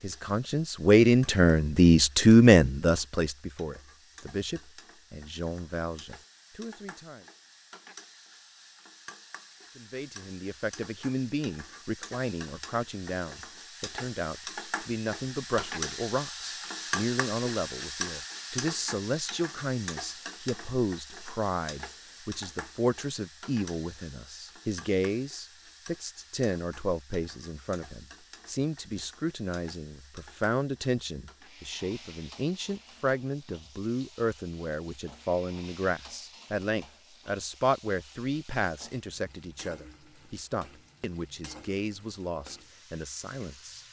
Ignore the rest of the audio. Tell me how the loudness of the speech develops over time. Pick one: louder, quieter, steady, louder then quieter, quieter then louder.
quieter.